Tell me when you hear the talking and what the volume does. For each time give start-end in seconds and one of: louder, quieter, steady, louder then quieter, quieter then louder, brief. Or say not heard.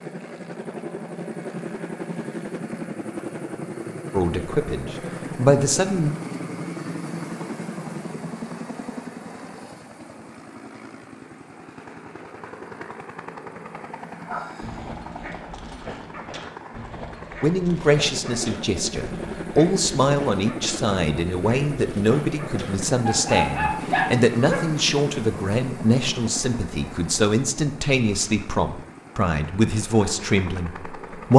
4.1-6.2 brief
17.4-31.3 steady.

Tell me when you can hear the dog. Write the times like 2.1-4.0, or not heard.
14.2-24.6.